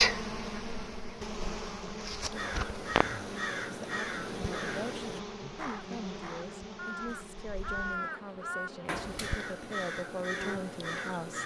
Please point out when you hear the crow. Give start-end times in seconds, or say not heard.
2.3-11.4.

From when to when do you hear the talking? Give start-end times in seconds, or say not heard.
3.7-11.4.